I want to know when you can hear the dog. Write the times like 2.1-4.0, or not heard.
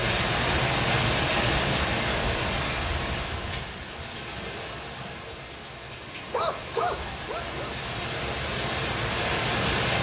6.3-7.8.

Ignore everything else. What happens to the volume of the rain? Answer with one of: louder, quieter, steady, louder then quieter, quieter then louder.
quieter then louder.